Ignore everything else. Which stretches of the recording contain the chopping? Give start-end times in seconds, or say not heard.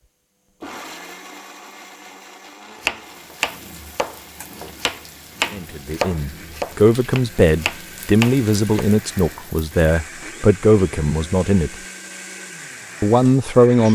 2.8-8.8.